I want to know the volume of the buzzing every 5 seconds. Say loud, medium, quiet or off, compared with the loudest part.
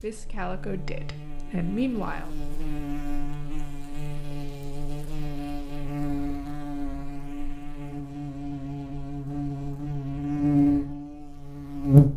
quiet, quiet, loud.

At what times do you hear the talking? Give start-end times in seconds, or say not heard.
0.0-2.3.